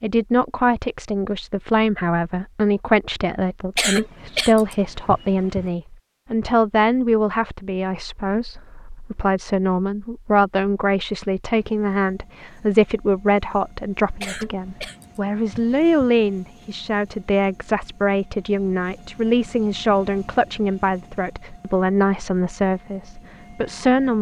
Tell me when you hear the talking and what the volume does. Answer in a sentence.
The talking can be heard from 0.0 to 24.1 s, at a steady volume.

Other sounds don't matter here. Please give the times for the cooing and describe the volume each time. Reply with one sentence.
The cooing can't be heard in this clip.